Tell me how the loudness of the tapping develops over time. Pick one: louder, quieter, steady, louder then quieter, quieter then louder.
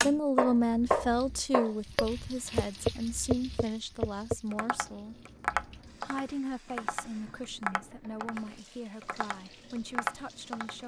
quieter.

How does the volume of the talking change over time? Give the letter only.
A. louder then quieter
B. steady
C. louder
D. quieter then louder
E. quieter
E.